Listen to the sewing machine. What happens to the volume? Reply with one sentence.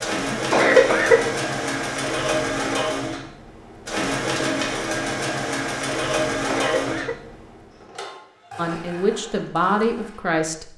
The loudness of the sewing machine goes down.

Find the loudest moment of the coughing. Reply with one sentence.
The volume of the coughing peaks at 1 second.